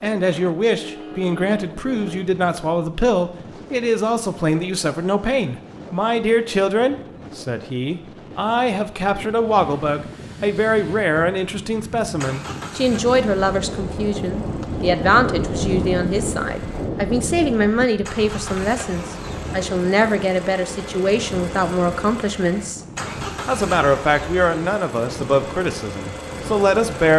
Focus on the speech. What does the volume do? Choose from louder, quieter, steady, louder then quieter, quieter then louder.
steady.